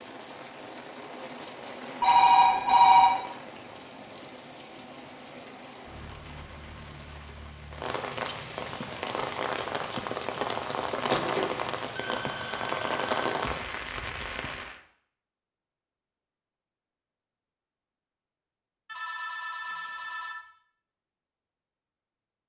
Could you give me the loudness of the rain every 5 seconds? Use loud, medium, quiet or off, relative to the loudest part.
medium, medium, loud, off, off.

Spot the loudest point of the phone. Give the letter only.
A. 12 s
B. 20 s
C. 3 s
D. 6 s
C.